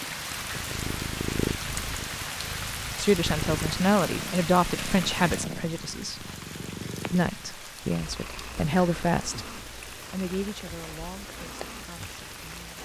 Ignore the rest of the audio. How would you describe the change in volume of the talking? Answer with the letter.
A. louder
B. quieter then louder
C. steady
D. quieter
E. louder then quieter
D.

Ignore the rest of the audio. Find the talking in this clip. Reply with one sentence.
You can hear the talking from 3.0 to 6.2 s and from 7.1 to 12.7 s.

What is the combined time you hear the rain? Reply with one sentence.
The rain can be heard for 13 seconds in total.